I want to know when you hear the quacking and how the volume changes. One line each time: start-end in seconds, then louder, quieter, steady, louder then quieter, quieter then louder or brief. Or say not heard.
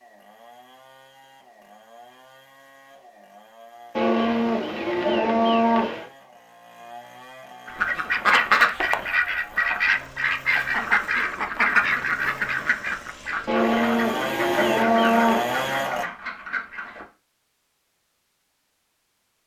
7.7-17.1 quieter.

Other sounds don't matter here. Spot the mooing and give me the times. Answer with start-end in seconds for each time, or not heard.
4.0-6.0, 13.4-15.8.